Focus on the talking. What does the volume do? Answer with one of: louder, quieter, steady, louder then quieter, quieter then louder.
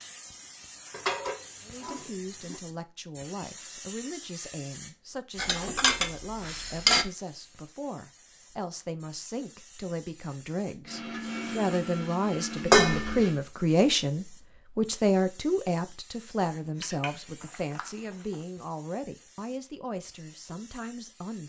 louder then quieter.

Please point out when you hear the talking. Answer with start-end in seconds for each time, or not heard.
1.6-21.4.